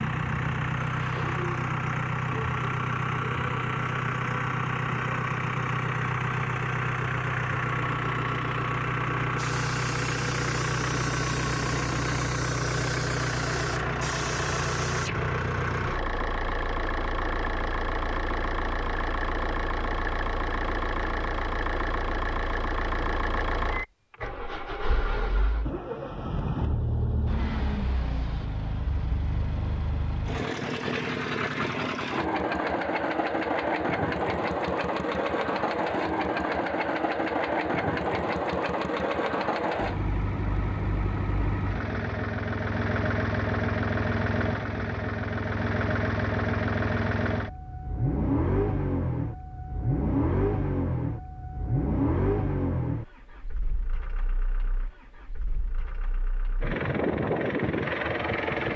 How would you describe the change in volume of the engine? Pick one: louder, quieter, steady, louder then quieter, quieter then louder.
steady.